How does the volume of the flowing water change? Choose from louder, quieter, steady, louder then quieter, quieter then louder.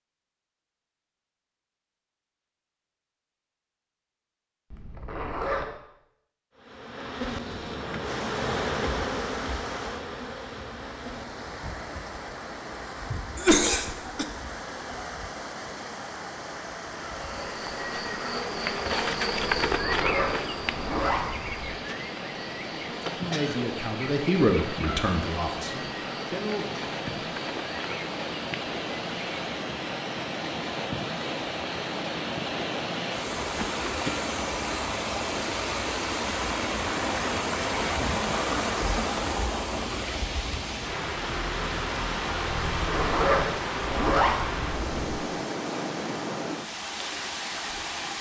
louder.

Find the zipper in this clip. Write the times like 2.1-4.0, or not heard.
4.7-5.7, 19.6-21.7, 42.7-45.2.